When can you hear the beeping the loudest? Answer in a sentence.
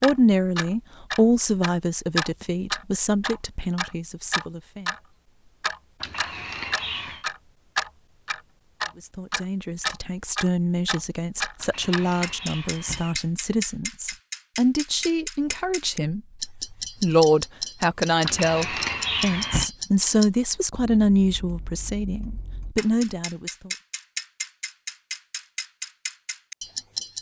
The loudest moment of the beeping is at 19 seconds.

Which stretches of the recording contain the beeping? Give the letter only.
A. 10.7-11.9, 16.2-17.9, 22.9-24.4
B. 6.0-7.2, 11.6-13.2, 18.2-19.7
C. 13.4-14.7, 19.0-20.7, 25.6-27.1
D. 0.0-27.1
B.